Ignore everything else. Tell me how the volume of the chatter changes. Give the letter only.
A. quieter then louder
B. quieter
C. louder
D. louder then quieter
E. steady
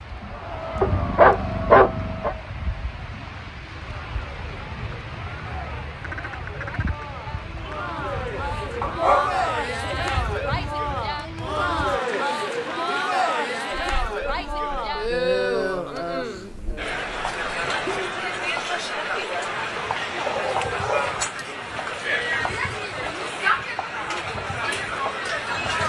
C.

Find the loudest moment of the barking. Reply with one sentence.
The loudest moment of the barking is at 2 seconds.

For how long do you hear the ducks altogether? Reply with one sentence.
You can hear the ducks for 2 seconds altogether.